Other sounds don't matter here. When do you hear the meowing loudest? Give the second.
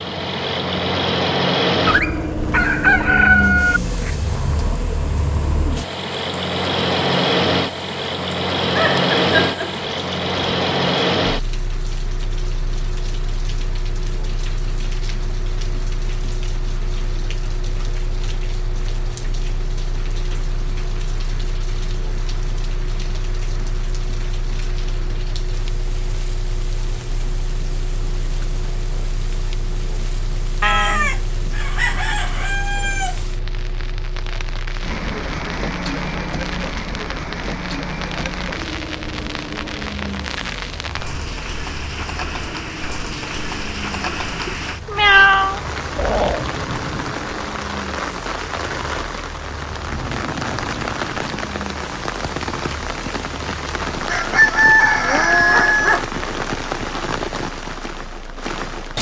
45 s.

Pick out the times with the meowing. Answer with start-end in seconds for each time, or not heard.
8.8-9.8, 44.5-46.5.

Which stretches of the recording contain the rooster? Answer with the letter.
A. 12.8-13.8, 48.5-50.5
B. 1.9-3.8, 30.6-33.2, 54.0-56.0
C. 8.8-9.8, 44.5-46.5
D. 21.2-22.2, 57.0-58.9
B.